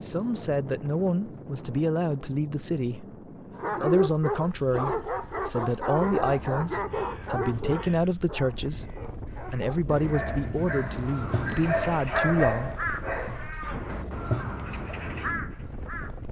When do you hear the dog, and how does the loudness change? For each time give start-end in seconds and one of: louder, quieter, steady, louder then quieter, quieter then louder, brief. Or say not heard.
3.5-14.4 quieter then louder.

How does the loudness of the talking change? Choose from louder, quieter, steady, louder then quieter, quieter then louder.
steady.